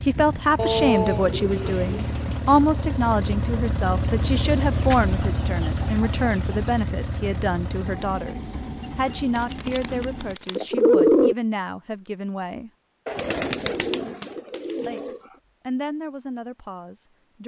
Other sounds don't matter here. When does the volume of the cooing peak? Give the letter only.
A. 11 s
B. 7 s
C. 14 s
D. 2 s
A.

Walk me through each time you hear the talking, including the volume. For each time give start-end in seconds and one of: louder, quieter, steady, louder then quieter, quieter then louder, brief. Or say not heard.
0.1-12.7 quieter
14.8-17.4 brief.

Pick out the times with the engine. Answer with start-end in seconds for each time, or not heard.
0.0-10.3.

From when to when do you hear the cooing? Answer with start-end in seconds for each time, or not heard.
0.6-2.5, 4.7-6.7, 9.3-11.3, 13.1-15.2.